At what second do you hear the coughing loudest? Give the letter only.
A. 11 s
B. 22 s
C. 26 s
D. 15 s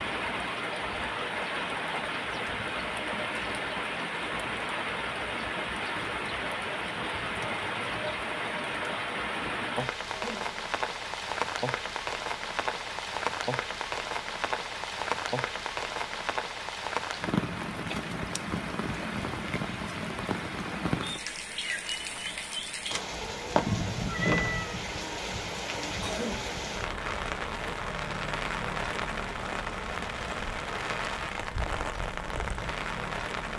C.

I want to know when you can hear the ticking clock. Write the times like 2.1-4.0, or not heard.
not heard.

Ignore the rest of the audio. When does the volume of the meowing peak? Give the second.
24 s.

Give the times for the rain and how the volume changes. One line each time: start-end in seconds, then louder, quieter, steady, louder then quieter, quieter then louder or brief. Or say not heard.
0.0-33.5 steady.